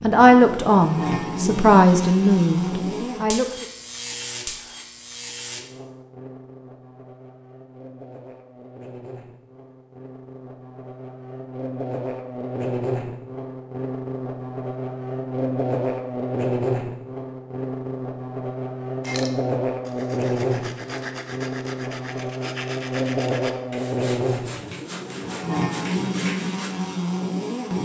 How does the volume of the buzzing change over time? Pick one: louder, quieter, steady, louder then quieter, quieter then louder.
quieter then louder.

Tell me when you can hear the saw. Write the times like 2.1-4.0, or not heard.
19.0-26.8.